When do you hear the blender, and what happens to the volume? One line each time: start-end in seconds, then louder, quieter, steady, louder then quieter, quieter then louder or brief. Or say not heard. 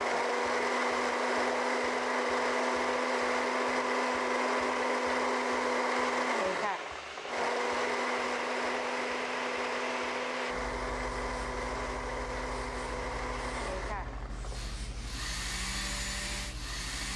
0.0-17.1 quieter.